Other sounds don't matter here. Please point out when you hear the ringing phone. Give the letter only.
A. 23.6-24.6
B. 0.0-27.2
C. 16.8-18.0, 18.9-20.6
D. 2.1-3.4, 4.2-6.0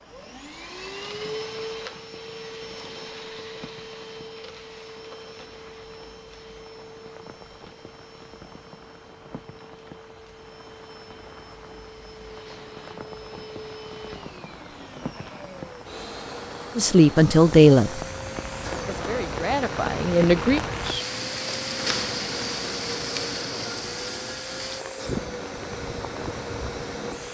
A.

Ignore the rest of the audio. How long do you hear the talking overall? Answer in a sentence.
The talking can be heard for 3 seconds in total.